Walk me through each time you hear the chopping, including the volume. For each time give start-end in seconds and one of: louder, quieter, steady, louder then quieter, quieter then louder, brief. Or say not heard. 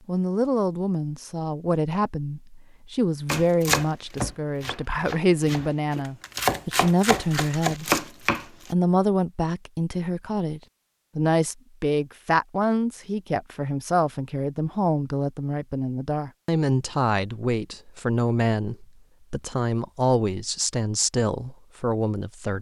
3.2-8.4 quieter then louder.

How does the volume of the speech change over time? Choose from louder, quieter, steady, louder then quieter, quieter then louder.
steady.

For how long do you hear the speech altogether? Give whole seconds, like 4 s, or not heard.
22 s.